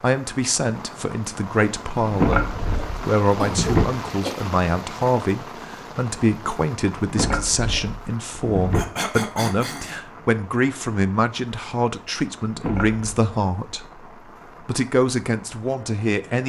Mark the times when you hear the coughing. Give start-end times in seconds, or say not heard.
3.2-4.3, 8.7-10.0.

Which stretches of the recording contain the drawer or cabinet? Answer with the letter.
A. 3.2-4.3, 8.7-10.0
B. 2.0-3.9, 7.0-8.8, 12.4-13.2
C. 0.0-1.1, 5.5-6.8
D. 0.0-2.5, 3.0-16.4
B.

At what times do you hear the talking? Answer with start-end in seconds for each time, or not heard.
0.0-2.5, 3.0-16.4.